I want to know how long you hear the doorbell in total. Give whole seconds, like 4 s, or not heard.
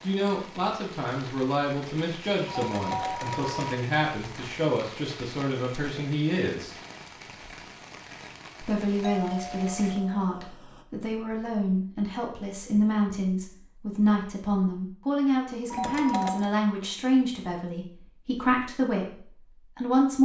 3 s.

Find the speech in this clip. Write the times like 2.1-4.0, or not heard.
0.0-6.8, 8.6-20.1.